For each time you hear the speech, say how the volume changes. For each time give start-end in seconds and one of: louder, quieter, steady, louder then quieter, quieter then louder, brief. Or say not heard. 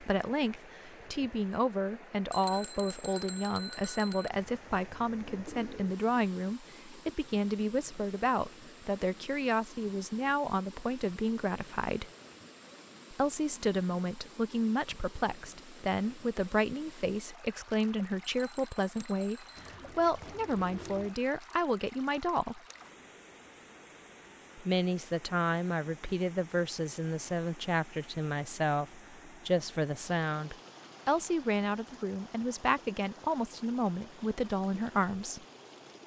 0.0-12.1 steady
13.1-22.6 steady
24.6-35.4 steady.